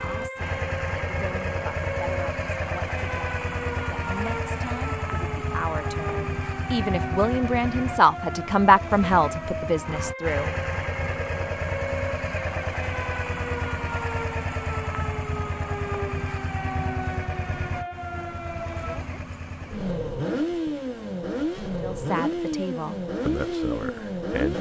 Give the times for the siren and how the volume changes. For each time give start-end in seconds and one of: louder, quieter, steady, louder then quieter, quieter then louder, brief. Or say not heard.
0.0-19.1 steady.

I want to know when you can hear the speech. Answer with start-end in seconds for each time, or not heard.
0.0-10.5, 21.8-24.5.